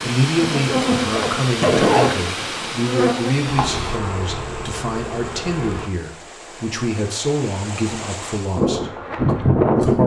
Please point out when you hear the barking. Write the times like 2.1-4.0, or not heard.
not heard.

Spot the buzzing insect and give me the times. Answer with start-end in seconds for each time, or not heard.
0.2-5.9, 8.6-10.0.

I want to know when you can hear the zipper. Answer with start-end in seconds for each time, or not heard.
0.8-2.3.